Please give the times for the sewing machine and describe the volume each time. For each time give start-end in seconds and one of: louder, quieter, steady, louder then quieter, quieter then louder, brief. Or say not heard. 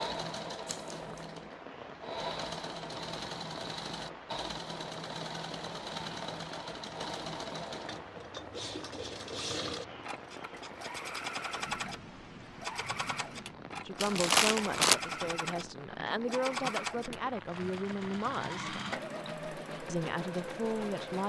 0.0-21.2 steady.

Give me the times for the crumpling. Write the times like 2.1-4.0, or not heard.
0.7-1.1, 14.0-14.9.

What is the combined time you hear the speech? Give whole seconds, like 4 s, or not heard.
6 s.